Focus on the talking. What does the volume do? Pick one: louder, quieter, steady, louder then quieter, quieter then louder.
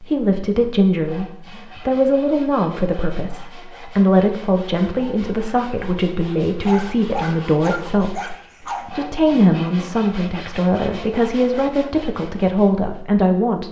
steady.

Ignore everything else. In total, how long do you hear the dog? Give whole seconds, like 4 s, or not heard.
2 s.